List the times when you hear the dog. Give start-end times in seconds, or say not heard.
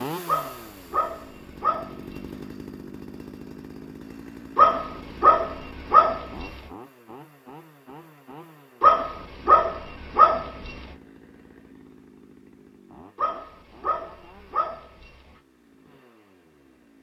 0.2-2.3, 4.5-6.5, 8.8-10.8, 13.2-15.2.